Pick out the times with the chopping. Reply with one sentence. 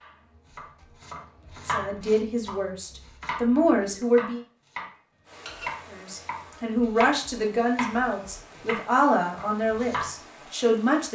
The chopping can be heard from 0.0 to 10.2 s.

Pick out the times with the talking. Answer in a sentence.
The talking can be heard from 1.6 to 4.4 s and from 5.9 to 11.1 s.